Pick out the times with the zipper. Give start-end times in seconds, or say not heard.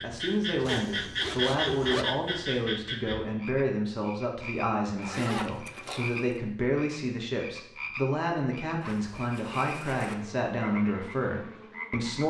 0.7-2.0, 5.0-6.3, 8.8-10.2.